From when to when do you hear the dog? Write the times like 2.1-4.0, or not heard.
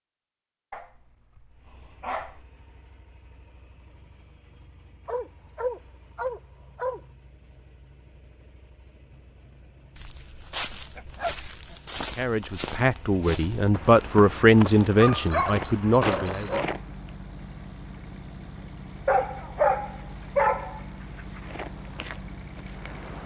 0.7-2.5, 5.0-7.0, 10.9-11.8, 14.9-16.6, 19.1-21.4.